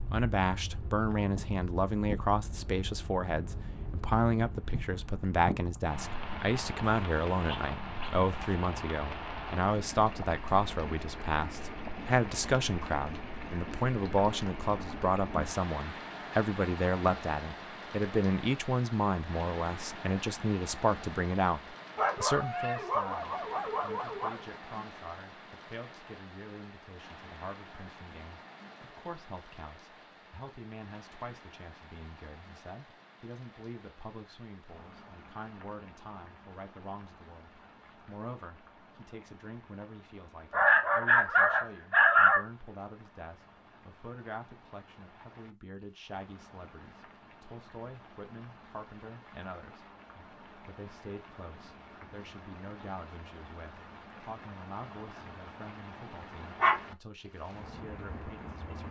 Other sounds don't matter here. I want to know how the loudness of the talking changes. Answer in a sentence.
The loudness of the talking goes down.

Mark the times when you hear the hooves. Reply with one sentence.
You can't hear the hooves here.